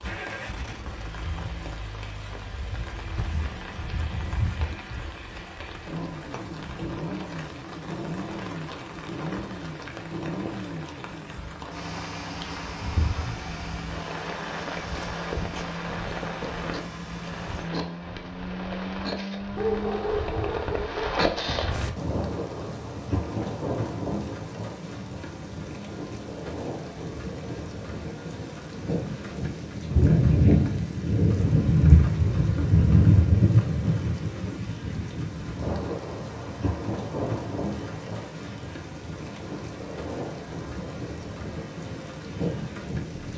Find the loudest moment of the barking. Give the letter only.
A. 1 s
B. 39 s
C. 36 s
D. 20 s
D.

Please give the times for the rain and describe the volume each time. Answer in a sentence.
You can hear the rain from 0.0 to 43.3 s, getting louder then quieter.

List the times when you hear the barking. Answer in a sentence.
You can hear the barking from 19.6 to 21.0 s.